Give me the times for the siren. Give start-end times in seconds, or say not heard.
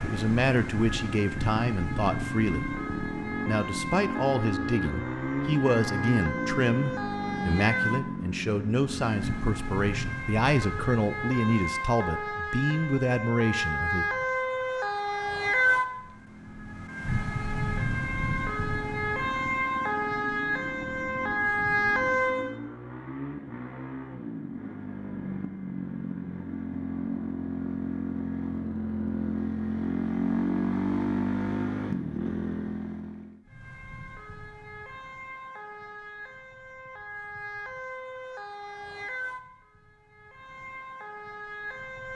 0.0-22.6, 33.5-42.1.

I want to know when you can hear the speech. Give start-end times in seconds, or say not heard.
0.0-2.7, 3.5-14.1.